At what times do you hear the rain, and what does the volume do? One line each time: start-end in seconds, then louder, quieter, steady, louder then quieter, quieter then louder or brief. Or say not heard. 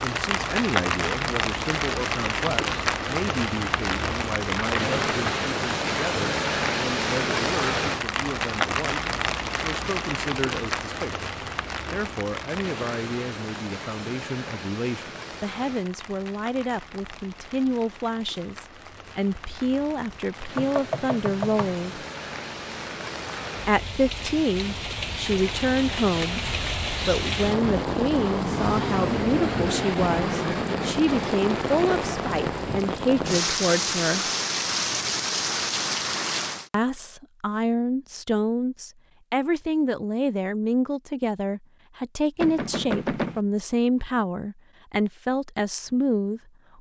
0.0-36.7 quieter then louder.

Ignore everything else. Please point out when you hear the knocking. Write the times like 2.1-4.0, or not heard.
4.5-5.3, 20.6-21.9, 42.4-43.4.